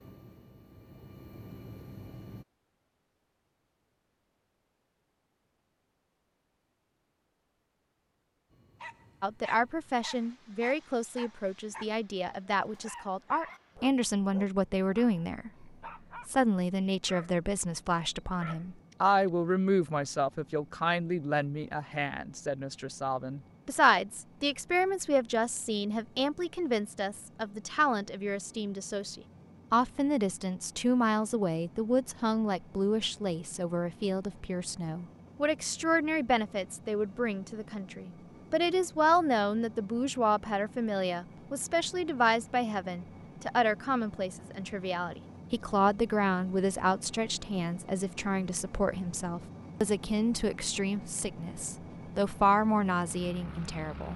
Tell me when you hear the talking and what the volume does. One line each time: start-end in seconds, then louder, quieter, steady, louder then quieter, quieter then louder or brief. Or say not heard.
9.2-54.1 steady.